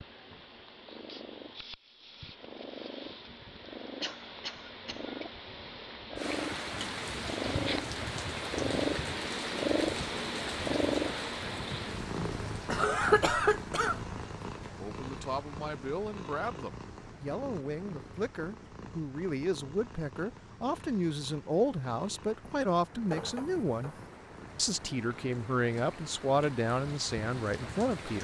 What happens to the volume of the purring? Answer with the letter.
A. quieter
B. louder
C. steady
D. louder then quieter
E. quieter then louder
D.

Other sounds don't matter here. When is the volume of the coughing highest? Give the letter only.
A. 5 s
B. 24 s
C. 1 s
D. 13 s
D.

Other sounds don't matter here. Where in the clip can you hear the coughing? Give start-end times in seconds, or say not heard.
4.0-5.0, 12.7-14.0, 23.1-24.1.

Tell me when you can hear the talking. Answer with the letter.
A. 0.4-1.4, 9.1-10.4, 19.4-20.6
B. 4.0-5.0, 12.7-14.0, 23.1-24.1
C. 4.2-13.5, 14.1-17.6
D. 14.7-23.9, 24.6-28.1
D.